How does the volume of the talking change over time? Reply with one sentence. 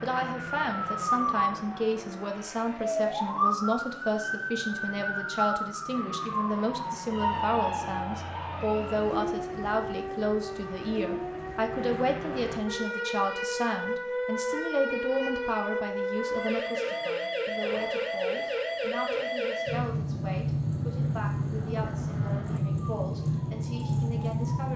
The volume of the talking goes down.